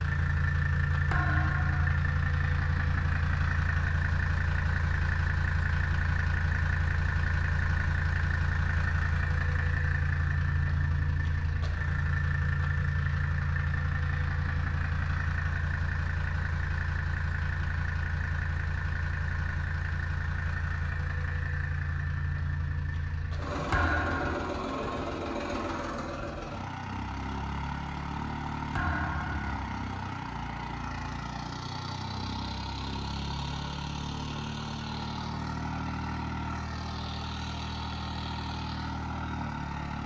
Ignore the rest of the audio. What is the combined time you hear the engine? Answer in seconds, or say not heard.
40 s.